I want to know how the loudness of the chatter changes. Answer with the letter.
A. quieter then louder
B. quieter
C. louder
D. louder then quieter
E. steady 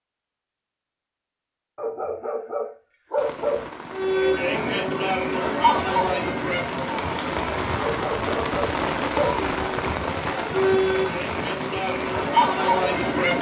A.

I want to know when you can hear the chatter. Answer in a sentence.
The chatter can be heard from 3.9 to 13.3 s.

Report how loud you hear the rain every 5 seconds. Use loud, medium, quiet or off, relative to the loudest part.
medium, loud, loud.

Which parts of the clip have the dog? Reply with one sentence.
The dog can be heard from 1.8 to 3.8 s and from 7.8 to 9.4 s.